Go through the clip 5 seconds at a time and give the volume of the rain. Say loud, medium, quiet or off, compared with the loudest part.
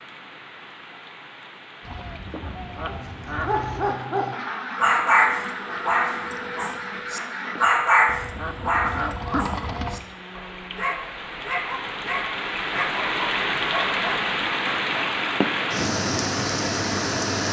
quiet, quiet, loud, loud.